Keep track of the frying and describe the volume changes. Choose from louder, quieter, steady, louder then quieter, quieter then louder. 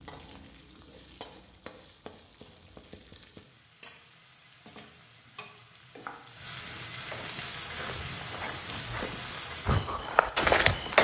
louder.